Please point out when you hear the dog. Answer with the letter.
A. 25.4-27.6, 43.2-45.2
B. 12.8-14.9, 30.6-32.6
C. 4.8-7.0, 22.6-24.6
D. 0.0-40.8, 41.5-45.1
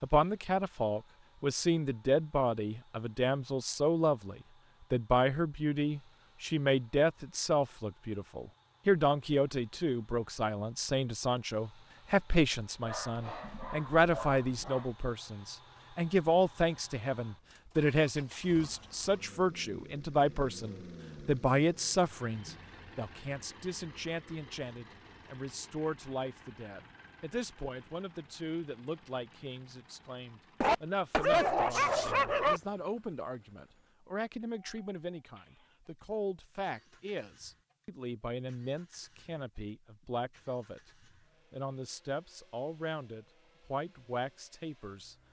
B.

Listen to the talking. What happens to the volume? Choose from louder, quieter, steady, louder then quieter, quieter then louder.
quieter.